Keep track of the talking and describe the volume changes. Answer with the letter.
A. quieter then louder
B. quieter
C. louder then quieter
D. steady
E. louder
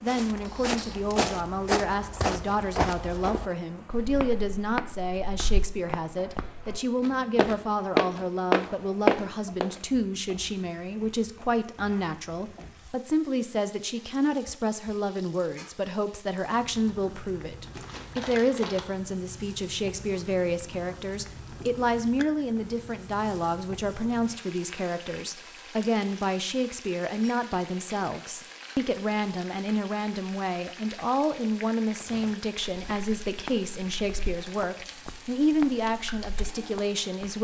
D.